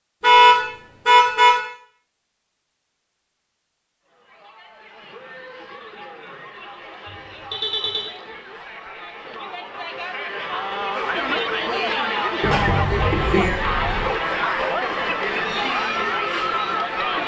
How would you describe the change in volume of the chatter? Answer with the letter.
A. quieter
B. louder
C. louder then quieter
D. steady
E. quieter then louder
B.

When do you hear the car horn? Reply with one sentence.
You can hear the car horn from 0.2 to 1.6 s, from 7.0 to 8.1 s and from 12.4 to 14.1 s.